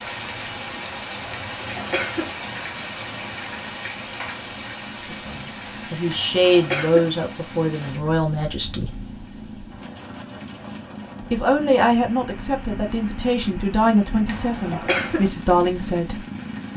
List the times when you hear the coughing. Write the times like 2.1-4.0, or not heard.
1.4-2.3, 6.1-7.1, 14.2-15.3.